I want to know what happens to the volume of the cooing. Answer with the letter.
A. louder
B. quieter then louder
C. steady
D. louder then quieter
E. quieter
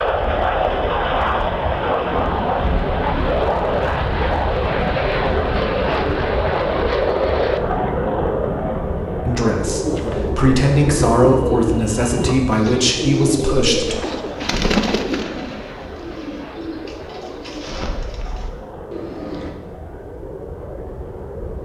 E.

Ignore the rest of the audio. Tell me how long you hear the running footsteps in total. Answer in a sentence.
The running footsteps can't be heard in this clip.